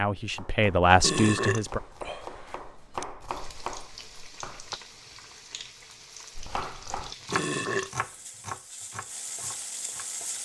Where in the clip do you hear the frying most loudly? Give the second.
10 s.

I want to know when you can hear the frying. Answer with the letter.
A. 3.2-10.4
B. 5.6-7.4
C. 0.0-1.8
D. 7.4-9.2
A.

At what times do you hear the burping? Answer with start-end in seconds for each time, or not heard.
1.0-3.0, 7.3-7.9.